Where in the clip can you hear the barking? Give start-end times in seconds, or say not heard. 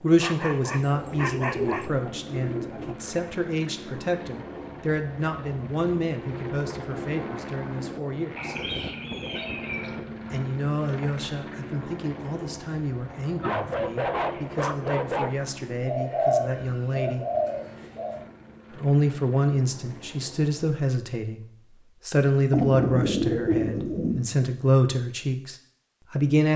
0.2-1.9, 13.4-15.3.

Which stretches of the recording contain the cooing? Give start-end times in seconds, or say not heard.
0.9-3.0, 8.3-9.9, 15.8-18.2, 22.5-24.2.